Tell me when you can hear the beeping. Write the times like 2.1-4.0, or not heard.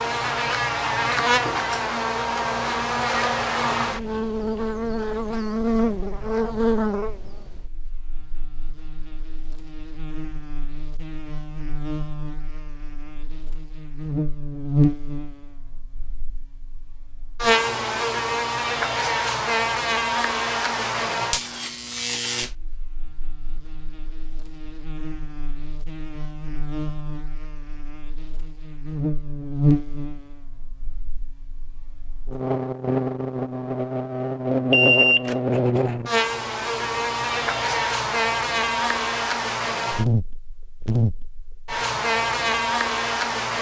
34.7-35.8.